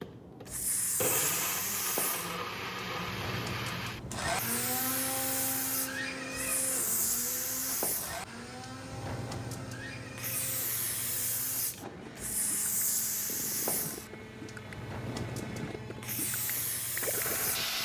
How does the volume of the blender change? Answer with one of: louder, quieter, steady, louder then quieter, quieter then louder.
quieter.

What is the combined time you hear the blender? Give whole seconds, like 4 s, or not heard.
18 s.